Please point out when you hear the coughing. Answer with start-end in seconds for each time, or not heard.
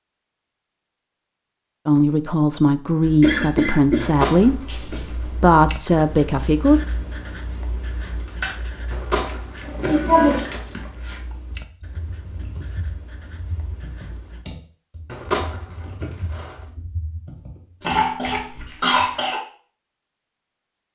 3.2-5.0, 9.8-10.4, 17.8-19.4.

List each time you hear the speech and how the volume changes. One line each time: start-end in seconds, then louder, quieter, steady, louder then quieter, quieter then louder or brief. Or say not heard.
1.9-6.8 steady.